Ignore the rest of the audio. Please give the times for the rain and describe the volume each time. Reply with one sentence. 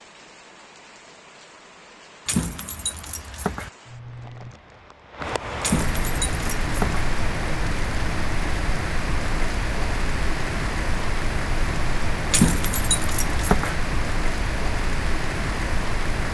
You can hear the rain from 0.0 to 16.3 s, getting louder.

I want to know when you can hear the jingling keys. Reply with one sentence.
The jingling keys can be heard from 2.2 to 3.7 s, from 5.6 to 7.0 s and from 12.3 to 13.8 s.